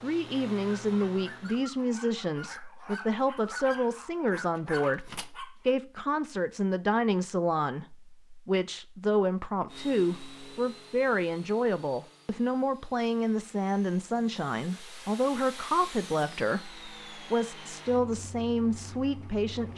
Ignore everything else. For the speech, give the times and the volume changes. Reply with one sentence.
The speech can be heard from 0.0 to 19.7 s, at a steady volume.